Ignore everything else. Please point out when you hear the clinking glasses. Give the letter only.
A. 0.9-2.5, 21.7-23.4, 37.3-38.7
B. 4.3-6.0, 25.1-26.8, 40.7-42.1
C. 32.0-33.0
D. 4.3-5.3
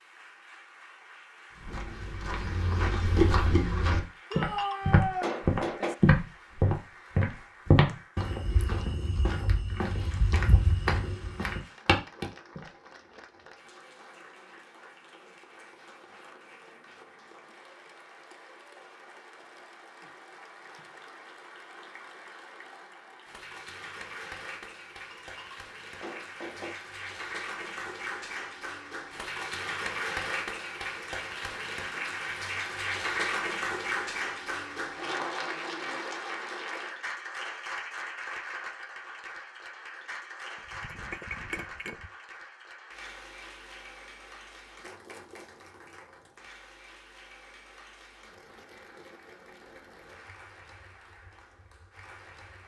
B.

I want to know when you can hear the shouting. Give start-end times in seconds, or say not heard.
4.3-5.3.